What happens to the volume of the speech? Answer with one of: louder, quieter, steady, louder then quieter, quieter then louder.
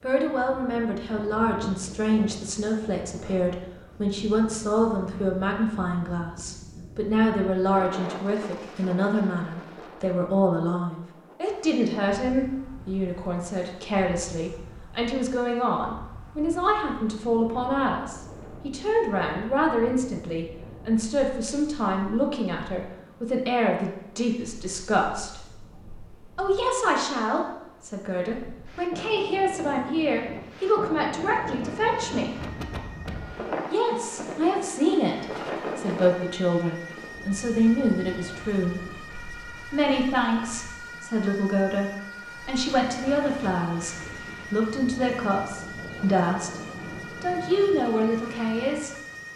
steady.